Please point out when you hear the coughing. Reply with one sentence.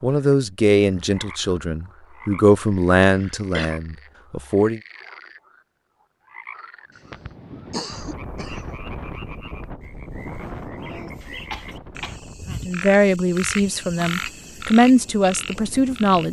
The coughing can be heard from 3.0 to 3.8 s, from 7.1 to 8.8 s and from 11.2 to 12.2 s.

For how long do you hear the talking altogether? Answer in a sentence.
You can hear the talking for 8 seconds altogether.